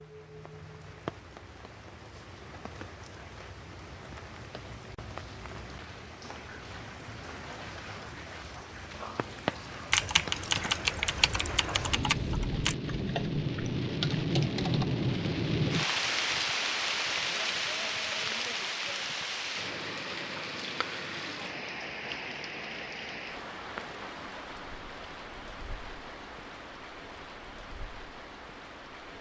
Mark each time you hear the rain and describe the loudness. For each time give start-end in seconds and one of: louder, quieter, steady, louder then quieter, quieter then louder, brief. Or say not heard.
0.0-29.1 louder then quieter.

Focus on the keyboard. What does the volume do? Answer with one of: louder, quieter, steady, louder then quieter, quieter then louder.
quieter then louder.